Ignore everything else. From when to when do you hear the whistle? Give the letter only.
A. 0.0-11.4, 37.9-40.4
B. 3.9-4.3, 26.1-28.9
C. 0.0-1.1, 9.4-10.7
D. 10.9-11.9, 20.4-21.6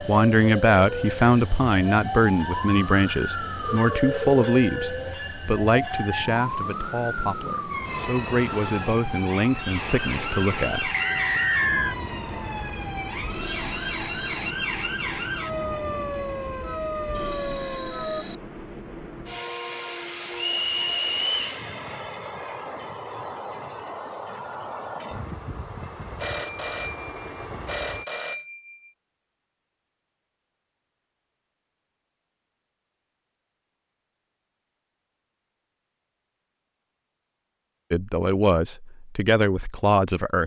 D.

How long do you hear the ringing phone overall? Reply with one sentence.
The ringing phone can be heard for 3 seconds in total.